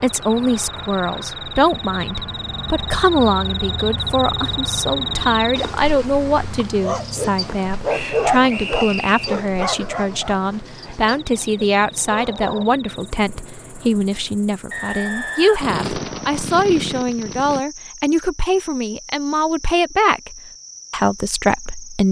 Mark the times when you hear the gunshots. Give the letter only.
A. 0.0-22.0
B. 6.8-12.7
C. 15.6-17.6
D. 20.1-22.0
C.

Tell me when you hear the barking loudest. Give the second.
8 s.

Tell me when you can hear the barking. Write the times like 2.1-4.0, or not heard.
6.8-12.7.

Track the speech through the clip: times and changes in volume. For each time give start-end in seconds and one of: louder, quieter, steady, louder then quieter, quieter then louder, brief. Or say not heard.
0.0-22.0 steady.